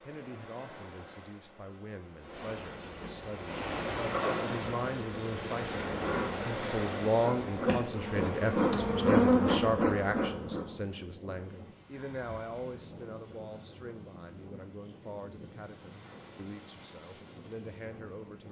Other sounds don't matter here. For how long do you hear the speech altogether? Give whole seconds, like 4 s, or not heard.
18 s.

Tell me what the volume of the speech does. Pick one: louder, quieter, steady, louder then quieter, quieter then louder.
louder then quieter.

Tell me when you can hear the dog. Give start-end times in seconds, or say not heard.
not heard.